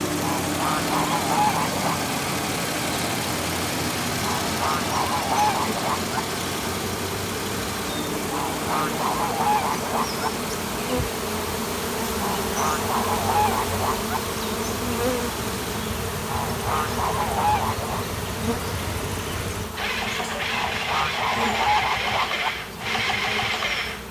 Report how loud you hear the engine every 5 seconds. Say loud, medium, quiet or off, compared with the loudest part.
loud, loud, medium, medium, loud.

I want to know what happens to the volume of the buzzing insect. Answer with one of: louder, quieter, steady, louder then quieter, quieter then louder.
louder then quieter.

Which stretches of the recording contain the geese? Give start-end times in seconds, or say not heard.
0.2-2.0, 4.2-6.2, 8.3-10.3, 12.2-14.2, 16.2-18.1, 20.5-22.5.